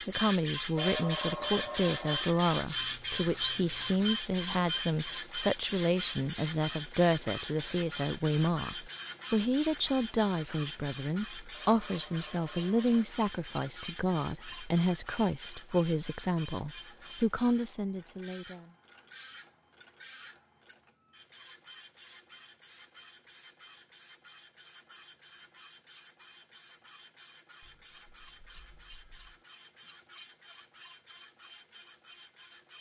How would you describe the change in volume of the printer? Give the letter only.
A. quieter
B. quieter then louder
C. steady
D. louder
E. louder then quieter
A.